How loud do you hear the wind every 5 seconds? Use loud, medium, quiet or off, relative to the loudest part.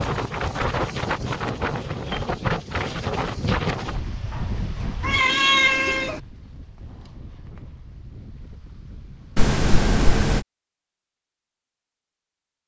loud, quiet, off.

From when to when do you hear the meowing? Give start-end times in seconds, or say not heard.
5.0-6.2.